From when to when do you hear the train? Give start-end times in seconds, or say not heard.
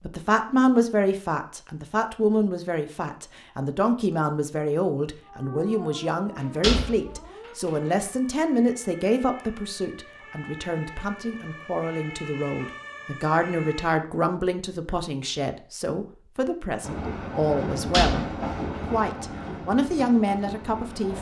16.8-21.1.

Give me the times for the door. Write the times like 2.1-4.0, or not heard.
6.4-7.7, 17.9-18.8.